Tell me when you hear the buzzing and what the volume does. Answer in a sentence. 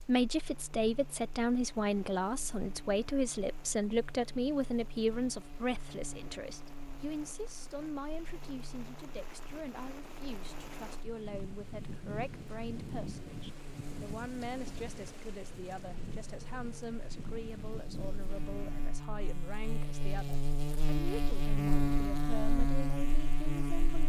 The buzzing can be heard from 0.0 to 24.0 s, getting louder.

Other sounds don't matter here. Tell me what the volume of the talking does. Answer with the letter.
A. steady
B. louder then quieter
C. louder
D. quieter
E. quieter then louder
D.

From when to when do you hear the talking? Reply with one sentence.
The talking can be heard from 0.1 to 24.0 s.